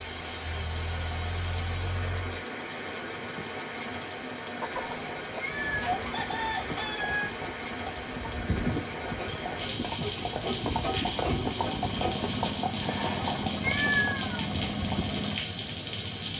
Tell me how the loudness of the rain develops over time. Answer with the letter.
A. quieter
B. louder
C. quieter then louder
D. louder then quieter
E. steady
E.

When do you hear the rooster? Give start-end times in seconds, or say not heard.
4.6-7.3.